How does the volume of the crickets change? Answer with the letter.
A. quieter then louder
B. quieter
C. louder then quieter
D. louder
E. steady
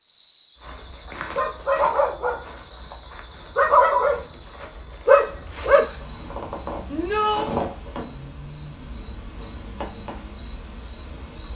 B.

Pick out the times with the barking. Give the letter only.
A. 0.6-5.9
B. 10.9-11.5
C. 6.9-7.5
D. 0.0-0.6
A.